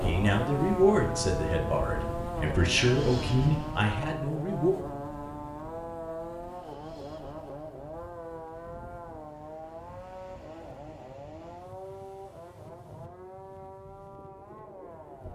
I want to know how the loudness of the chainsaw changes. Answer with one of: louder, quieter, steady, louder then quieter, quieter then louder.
quieter.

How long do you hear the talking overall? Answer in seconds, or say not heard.
5 s.